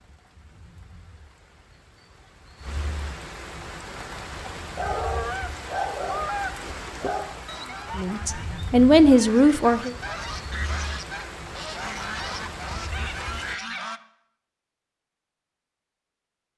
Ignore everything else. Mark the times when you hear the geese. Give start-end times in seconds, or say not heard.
4.8-14.0.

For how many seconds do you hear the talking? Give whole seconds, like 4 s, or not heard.
2 s.